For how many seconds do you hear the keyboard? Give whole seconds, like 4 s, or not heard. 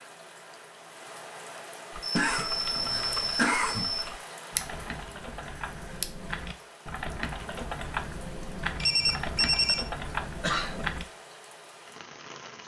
9 s.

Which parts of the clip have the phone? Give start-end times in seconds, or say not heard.
2.8-3.4, 8.8-9.8.